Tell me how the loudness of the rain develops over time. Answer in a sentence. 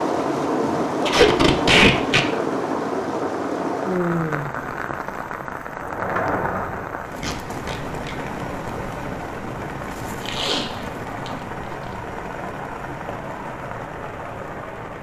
The loudness of the rain goes down.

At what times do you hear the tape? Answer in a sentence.
The tape can be heard from 1.0 to 2.2 s, from 7.2 to 8.2 s and from 10.2 to 11.3 s.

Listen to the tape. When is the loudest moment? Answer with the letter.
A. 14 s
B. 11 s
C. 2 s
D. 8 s
C.